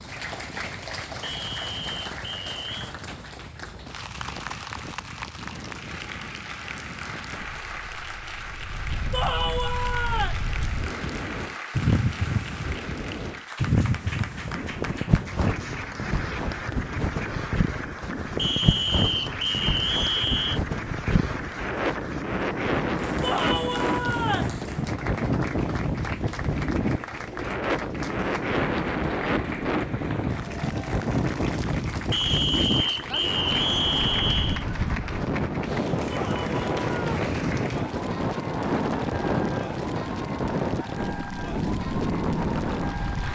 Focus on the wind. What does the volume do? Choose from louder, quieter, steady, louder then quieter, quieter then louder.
louder.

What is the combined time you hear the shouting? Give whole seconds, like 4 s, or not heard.
4 s.